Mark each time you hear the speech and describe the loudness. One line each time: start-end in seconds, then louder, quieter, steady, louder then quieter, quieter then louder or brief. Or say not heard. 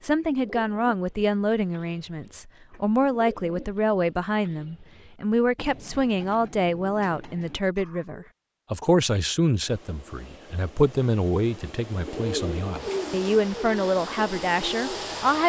0.0-15.4 steady.